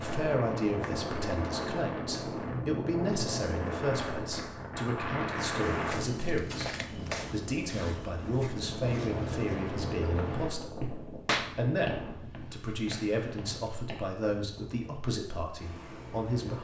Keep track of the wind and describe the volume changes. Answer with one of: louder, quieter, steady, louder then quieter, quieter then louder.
quieter.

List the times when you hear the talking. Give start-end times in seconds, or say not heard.
0.0-16.6.